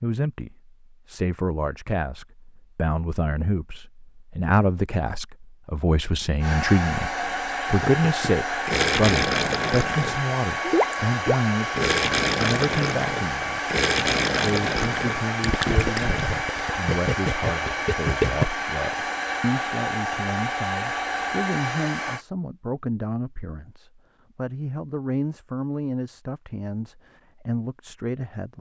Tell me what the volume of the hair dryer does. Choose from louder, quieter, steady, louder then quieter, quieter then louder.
steady.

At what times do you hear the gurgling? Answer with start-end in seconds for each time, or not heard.
7.7-18.4.